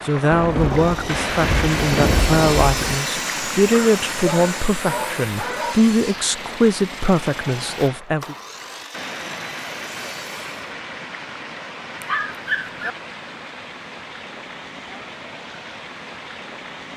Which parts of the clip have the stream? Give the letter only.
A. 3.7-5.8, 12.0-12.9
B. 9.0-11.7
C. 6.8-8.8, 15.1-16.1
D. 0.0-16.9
D.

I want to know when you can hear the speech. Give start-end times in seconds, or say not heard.
0.1-8.3.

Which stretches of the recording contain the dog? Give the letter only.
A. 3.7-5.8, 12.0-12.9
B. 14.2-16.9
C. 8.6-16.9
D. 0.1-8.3
A.